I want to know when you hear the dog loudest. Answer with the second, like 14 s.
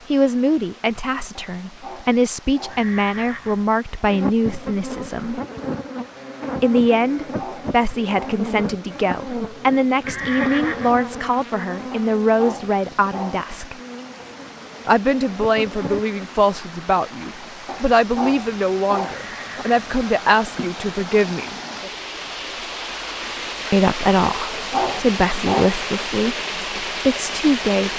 25 s.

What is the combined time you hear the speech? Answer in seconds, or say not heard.
23 s.